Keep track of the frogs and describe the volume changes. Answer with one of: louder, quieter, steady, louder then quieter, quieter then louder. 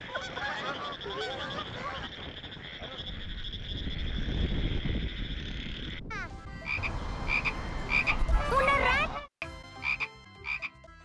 louder.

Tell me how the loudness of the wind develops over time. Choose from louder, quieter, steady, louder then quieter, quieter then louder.
louder then quieter.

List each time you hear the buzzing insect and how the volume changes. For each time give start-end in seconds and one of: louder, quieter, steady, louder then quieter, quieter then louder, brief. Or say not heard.
not heard.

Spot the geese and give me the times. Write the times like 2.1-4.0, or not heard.
0.1-2.1, 6.8-9.3.